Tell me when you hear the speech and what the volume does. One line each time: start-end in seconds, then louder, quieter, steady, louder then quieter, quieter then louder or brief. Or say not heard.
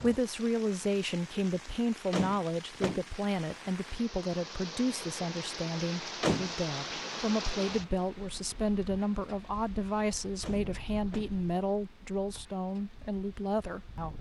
0.0-14.1 steady.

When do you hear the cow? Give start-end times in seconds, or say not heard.
not heard.